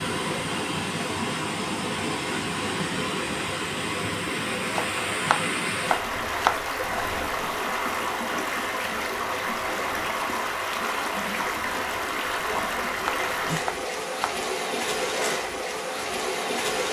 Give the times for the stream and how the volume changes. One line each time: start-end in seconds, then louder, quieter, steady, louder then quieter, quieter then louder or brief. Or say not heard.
0.0-16.8 steady.